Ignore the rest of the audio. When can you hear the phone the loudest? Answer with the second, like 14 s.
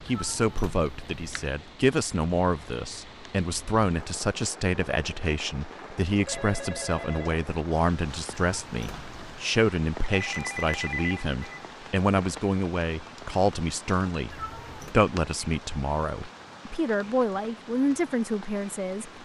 11 s.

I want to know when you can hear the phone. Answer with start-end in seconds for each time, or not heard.
6.2-7.4, 10.1-11.7.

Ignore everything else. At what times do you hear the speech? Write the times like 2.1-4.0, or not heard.
0.0-19.1.